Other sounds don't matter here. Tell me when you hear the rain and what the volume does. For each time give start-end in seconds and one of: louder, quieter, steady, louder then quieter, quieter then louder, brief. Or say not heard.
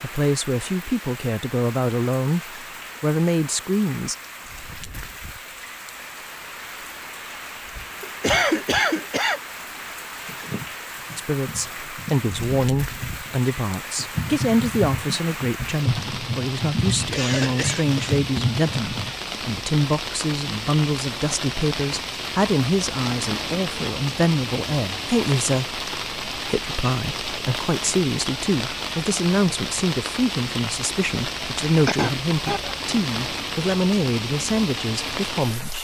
0.0-35.7 louder.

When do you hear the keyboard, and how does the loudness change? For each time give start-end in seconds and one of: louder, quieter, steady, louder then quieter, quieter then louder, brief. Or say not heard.
10.2-19.1 louder.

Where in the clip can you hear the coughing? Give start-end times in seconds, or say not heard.
8.0-9.4, 17.1-18.2, 31.9-32.8.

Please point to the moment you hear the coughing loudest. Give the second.
8 s.